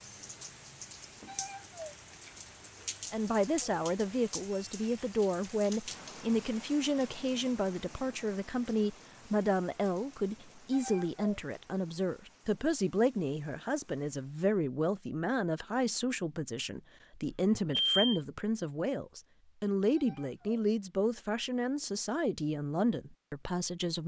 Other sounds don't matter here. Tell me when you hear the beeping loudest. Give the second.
18 s.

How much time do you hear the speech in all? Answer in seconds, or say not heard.
21 s.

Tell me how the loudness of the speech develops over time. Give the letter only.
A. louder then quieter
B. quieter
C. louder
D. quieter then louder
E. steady
E.